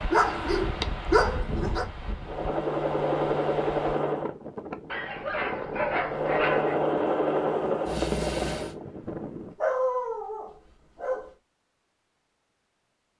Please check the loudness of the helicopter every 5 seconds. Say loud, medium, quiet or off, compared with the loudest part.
loud, loud, off.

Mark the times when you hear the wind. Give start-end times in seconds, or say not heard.
0.0-9.6.